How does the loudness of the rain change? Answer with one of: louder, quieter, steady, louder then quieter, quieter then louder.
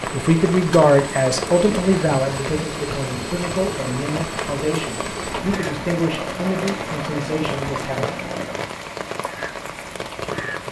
steady.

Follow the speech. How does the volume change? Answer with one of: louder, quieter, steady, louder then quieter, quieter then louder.
quieter.